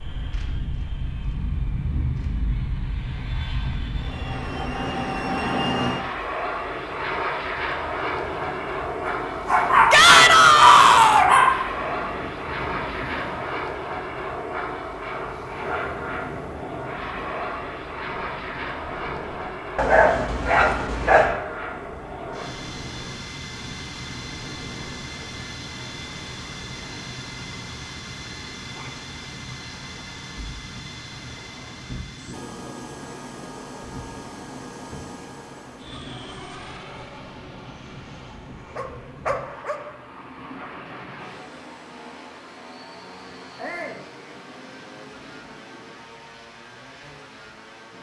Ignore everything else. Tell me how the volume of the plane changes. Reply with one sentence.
The volume of the plane goes down.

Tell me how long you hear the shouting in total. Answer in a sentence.
You can hear the shouting for 2 seconds altogether.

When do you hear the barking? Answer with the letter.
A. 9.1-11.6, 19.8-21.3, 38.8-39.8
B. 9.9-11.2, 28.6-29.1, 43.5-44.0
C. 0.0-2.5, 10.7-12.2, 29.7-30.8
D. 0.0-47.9
A.